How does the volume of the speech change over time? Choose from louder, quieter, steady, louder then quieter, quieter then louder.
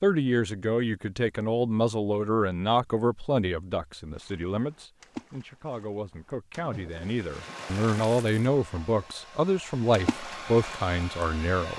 quieter then louder.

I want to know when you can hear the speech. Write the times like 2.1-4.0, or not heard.
0.0-11.7.